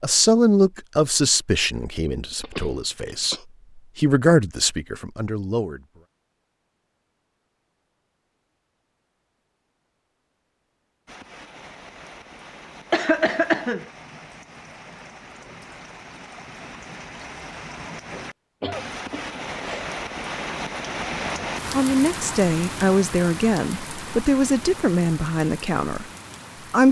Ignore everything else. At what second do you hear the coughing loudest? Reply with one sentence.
The loudest moment of the coughing is at 13 seconds.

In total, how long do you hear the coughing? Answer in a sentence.
You can hear the coughing for 3 seconds altogether.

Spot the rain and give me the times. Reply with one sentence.
The rain can be heard from 11.1 to 26.8 s.